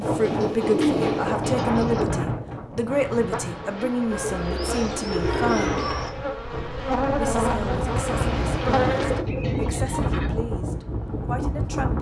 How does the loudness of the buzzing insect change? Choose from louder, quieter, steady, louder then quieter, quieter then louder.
louder.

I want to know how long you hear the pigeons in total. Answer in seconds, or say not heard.
6 s.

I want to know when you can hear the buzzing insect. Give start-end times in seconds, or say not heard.
2.9-9.2.